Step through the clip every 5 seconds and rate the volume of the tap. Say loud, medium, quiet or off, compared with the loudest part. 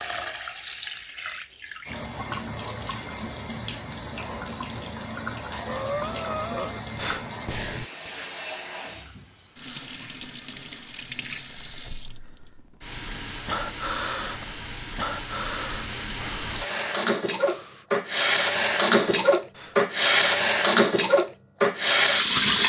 quiet, quiet, quiet, medium, loud.